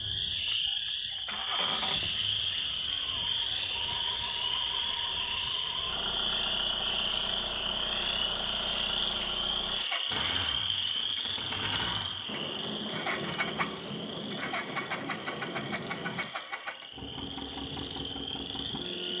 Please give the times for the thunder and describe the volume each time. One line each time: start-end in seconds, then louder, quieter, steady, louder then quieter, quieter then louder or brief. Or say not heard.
12.2-16.3 steady.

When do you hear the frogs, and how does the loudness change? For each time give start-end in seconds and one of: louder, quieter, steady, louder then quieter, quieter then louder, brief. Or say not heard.
0.0-19.1 quieter.